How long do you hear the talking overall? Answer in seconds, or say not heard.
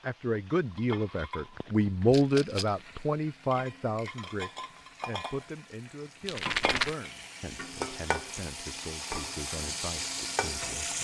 11 s.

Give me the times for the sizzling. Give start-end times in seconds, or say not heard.
0.0-10.9.